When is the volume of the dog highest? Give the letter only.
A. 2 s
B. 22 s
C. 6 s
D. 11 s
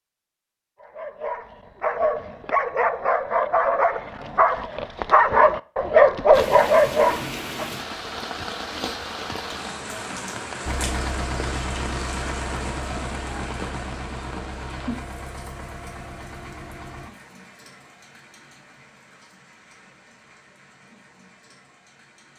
C.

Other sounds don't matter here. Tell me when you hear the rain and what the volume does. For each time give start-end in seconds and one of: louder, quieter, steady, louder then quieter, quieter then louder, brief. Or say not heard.
6.3-22.3 quieter.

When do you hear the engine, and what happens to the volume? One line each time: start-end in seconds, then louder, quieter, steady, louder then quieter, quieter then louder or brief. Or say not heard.
10.7-17.1 quieter.